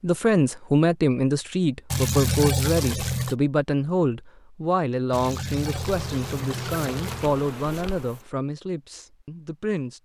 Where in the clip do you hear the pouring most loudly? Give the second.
2 s.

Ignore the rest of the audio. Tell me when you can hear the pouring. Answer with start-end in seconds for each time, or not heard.
1.9-3.4, 5.1-7.3.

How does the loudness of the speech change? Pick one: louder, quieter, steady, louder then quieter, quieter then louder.
quieter.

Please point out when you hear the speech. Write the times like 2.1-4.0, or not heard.
0.0-9.9.